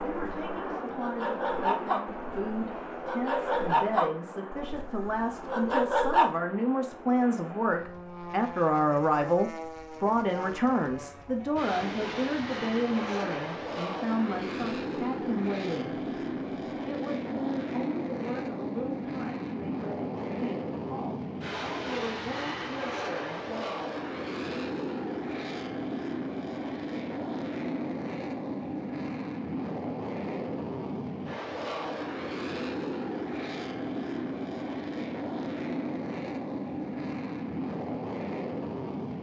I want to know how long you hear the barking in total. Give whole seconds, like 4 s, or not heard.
6 s.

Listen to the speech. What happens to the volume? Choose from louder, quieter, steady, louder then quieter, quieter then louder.
louder then quieter.